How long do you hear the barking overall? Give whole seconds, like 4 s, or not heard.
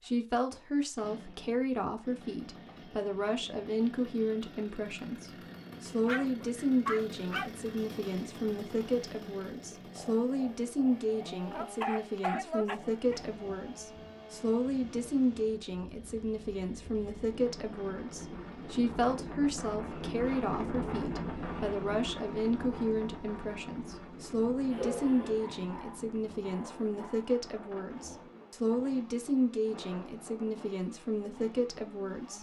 6 s.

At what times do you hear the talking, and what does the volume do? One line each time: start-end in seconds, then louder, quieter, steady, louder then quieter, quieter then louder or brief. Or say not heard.
0.0-32.3 steady.